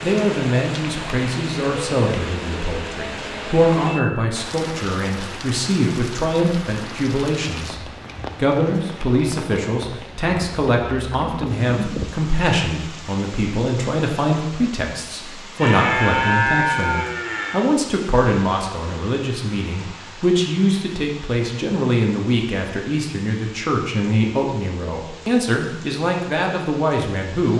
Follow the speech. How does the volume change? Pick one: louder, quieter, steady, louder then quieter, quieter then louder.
steady.